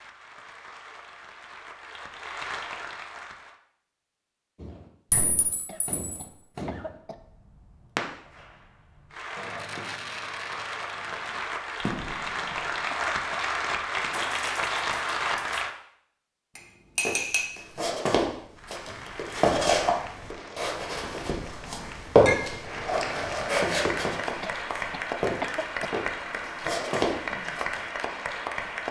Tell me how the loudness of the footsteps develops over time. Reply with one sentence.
The volume of the footsteps goes up, then down.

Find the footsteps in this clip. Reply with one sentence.
You can hear the footsteps from 17.1 to 27.8 s.